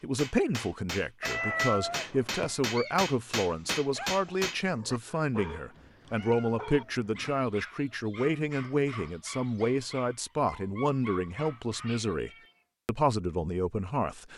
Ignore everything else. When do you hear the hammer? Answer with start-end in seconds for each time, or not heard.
0.1-4.6.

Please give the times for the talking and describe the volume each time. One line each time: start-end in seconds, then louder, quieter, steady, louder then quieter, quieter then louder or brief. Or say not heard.
0.0-14.3 steady.